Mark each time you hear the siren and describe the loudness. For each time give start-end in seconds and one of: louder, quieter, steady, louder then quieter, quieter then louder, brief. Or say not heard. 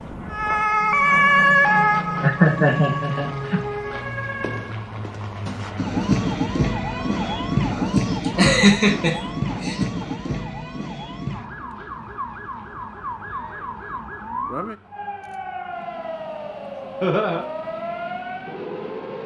0.0-19.2 quieter.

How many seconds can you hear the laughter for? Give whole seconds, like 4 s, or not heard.
4 s.